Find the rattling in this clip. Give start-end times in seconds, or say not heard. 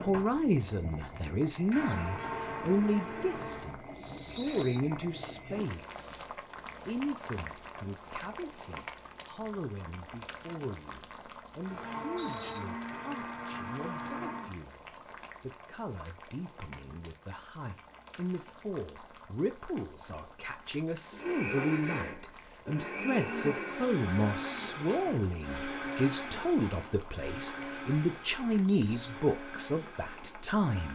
4.3-4.8, 12.2-12.6, 28.6-29.1.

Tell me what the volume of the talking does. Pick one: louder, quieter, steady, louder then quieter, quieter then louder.
quieter then louder.